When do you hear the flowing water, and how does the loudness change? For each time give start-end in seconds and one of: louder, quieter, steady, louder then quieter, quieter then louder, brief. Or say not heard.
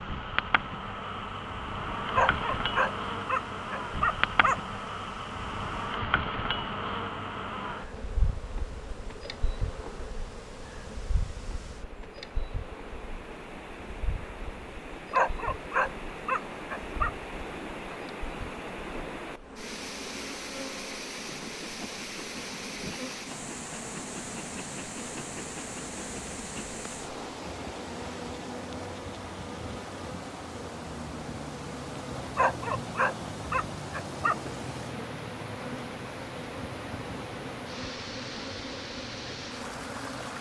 0.0-40.3 louder.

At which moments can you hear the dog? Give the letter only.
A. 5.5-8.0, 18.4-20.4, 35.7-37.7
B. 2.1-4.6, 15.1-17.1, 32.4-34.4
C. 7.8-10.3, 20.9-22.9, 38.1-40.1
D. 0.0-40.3
B.